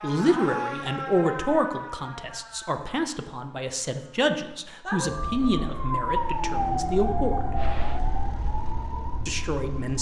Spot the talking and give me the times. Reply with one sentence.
You can hear the talking from 0.0 to 7.3 s and from 9.2 to 9.9 s.